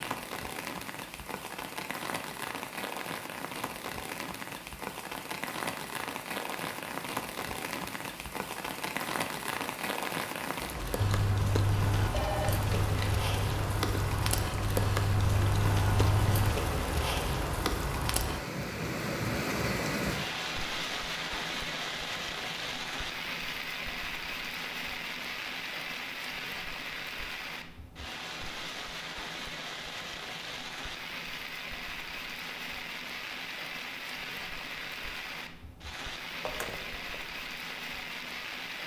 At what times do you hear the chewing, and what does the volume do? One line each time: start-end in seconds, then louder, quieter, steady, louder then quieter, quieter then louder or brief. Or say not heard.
10.9-16.6 quieter then louder.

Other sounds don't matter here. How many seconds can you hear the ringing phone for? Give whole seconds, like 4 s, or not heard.
2 s.